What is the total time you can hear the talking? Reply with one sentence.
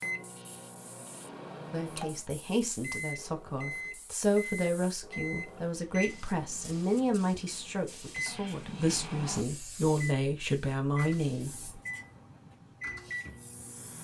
You can hear the talking for 10 seconds altogether.